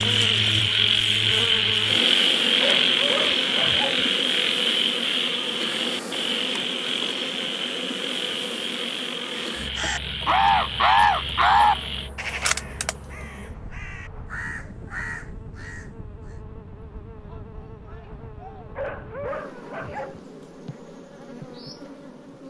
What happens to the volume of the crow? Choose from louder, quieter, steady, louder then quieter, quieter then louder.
quieter.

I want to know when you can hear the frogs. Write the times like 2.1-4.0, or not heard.
0.0-12.1.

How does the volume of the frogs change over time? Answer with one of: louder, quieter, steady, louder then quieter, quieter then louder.
quieter.